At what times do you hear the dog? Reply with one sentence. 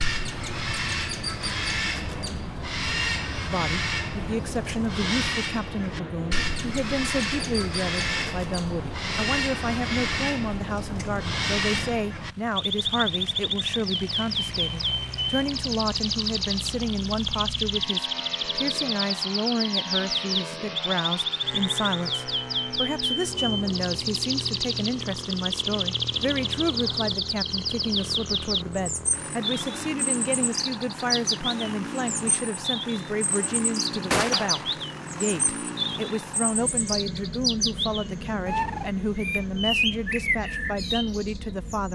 The dog can't be heard in this clip.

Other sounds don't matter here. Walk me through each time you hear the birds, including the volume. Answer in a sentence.
You can hear the birds from 0.0 to 41.9 s, at a steady volume.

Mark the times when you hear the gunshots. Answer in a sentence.
You can hear the gunshots from 34.1 to 34.8 s.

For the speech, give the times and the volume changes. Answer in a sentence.
You can hear the speech from 3.4 to 41.9 s, at a steady volume.